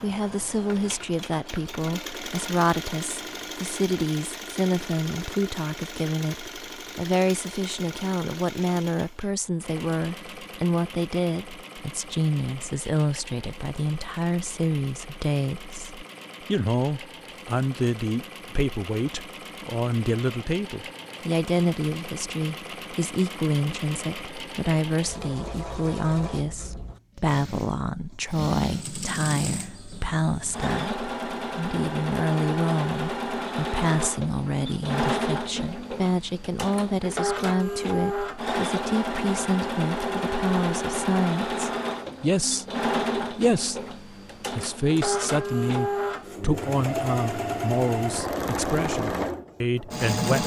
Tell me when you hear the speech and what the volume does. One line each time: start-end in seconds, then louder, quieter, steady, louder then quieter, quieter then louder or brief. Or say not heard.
0.0-50.4 steady.